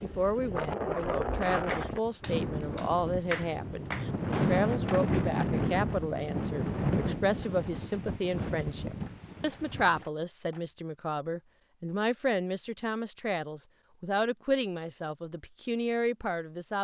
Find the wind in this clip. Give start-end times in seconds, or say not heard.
0.0-10.1.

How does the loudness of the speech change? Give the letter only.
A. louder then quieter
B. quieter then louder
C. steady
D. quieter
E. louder
C.